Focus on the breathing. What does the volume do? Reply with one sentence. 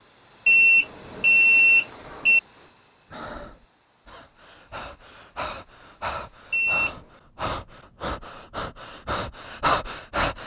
The volume of the breathing goes up.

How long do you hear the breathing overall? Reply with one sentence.
The breathing can be heard for 8 seconds in total.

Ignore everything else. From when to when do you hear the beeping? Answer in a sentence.
The beeping can be heard from 0.5 to 2.4 s and from 6.5 to 7.0 s.